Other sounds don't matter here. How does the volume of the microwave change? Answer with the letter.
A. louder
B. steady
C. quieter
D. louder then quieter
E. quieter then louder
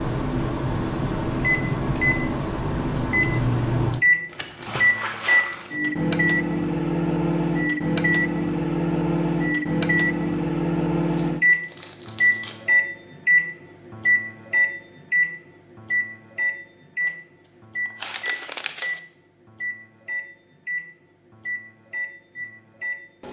C.